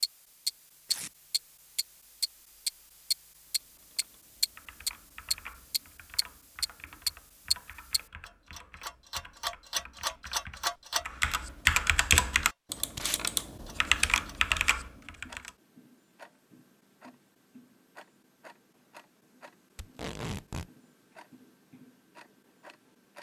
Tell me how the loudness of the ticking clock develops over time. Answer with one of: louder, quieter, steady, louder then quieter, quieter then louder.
quieter.